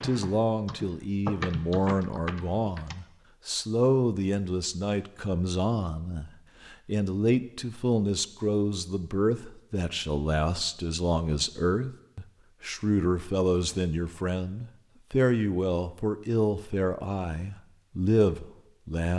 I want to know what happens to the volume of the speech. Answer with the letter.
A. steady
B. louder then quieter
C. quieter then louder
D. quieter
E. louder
A.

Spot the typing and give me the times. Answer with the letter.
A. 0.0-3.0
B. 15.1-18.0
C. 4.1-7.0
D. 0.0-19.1
A.